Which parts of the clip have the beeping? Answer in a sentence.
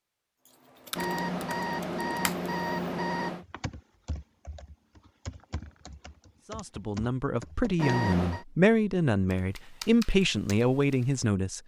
You can hear the beeping from 0.9 to 3.5 s and from 7.8 to 8.4 s.